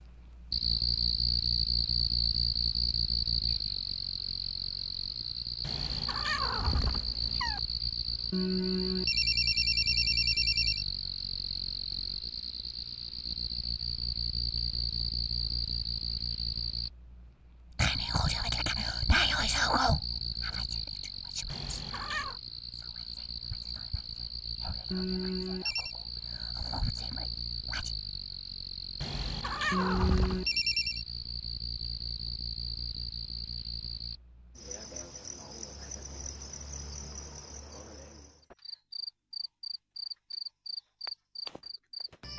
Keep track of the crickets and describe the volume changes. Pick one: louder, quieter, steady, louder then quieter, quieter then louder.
quieter.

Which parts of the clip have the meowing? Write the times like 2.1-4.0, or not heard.
5.6-7.6, 21.4-22.4, 29.0-30.5.